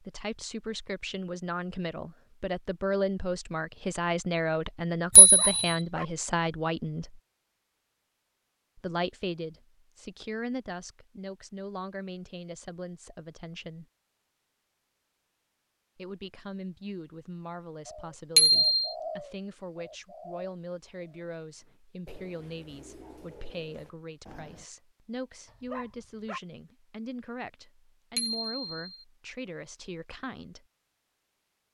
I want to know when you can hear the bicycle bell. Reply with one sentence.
The bicycle bell can be heard from 5.2 to 5.8 s, from 18.4 to 18.9 s and from 28.1 to 29.1 s.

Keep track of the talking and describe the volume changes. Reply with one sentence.
The volume of the talking goes down.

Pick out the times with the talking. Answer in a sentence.
You can hear the talking from 0.0 to 7.2 s, from 8.8 to 13.8 s and from 15.9 to 30.6 s.